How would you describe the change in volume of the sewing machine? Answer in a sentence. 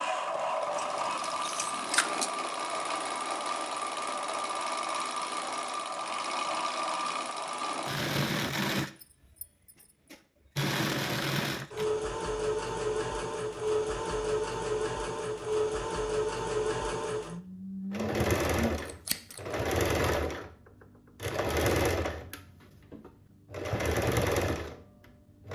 The volume of the sewing machine stays about the same.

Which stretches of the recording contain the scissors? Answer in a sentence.
The scissors can be heard from 0.8 to 2.3 s and from 18.9 to 19.4 s.